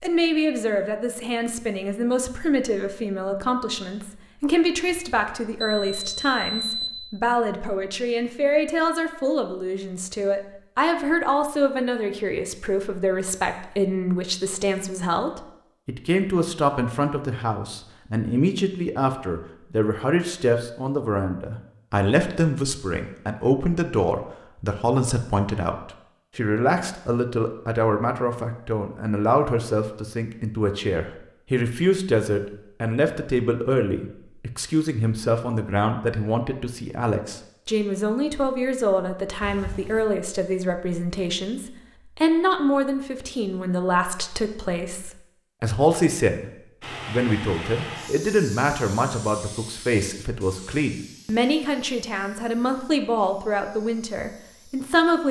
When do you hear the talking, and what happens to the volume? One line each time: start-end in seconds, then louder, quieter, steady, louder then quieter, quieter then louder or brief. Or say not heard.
0.0-55.2 steady.